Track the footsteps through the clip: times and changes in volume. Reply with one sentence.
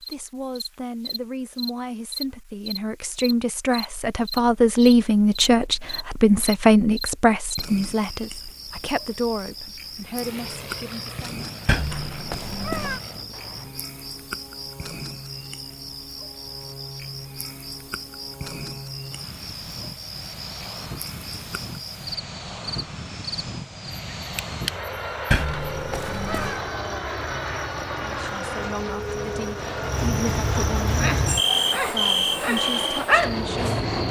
You can't hear the footsteps here.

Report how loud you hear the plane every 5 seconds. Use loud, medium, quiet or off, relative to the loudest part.
off, off, medium, medium, medium, loud, loud.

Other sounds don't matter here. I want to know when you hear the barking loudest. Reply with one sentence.
The loudest moment of the barking is at 33 seconds.